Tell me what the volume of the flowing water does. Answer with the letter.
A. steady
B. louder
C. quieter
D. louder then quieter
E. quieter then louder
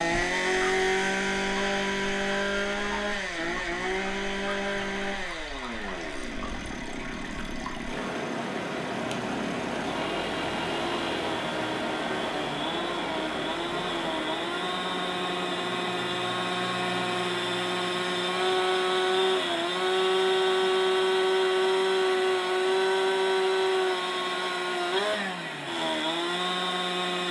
D.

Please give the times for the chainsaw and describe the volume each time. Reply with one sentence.
You can hear the chainsaw from 0.0 to 27.2 s, getting quieter then louder.